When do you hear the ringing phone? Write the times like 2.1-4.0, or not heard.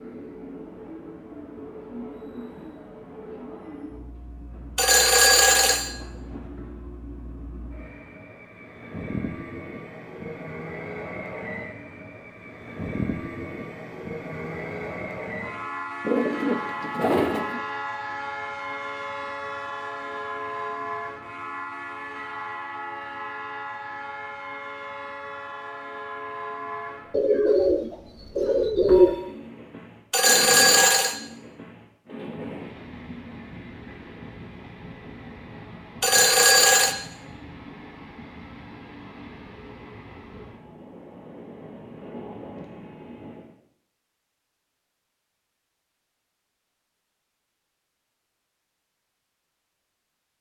4.8-5.9, 30.1-31.1, 36.0-37.0.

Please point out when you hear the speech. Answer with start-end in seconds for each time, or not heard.
not heard.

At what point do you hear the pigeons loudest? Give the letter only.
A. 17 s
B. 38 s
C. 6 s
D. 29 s
D.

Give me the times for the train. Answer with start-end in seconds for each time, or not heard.
0.0-43.5.